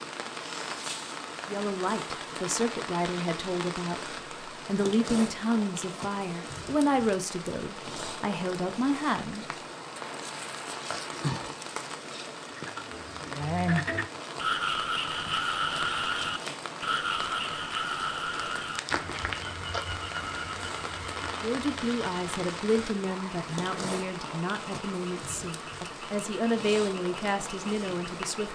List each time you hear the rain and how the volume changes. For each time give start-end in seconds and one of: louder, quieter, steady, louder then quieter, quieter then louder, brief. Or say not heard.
0.0-28.5 steady.